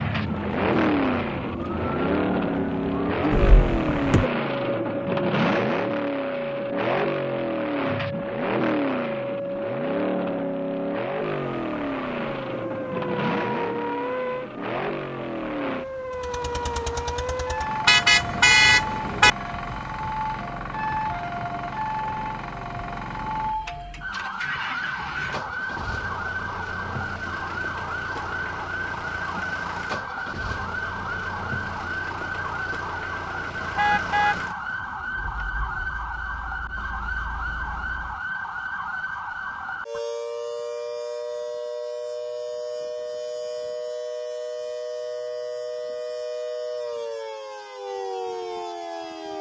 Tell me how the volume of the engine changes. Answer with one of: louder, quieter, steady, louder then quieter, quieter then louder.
quieter.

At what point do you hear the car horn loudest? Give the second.
19 s.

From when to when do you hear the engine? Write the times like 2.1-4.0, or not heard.
0.0-38.2.